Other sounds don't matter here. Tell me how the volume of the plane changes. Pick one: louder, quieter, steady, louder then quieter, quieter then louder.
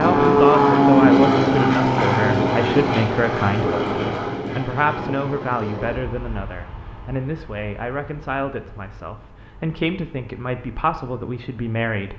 quieter.